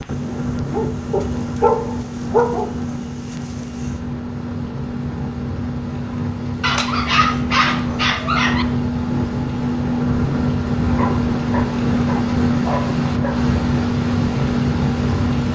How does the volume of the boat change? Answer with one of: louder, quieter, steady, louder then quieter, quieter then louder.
louder.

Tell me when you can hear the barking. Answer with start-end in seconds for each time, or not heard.
0.3-2.7, 6.6-8.7, 10.8-13.4.